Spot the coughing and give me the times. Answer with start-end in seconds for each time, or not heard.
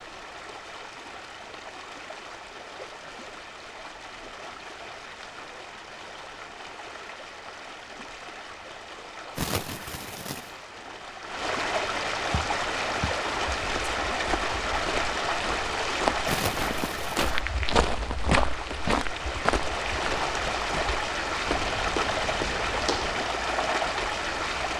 9.3-10.5, 16.2-17.4.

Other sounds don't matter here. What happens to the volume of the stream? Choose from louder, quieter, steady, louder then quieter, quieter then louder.
louder.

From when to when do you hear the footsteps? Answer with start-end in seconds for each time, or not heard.
12.3-23.3.